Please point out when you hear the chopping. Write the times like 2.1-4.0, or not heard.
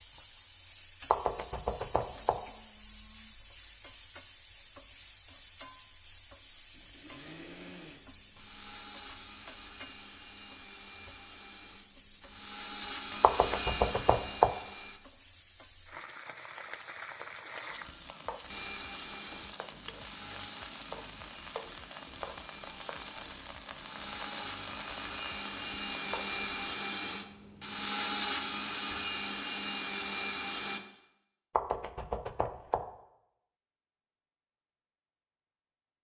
1.1-2.4, 13.2-14.6, 31.6-32.9.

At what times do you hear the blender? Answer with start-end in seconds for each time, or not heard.
6.7-15.0, 18.4-30.8.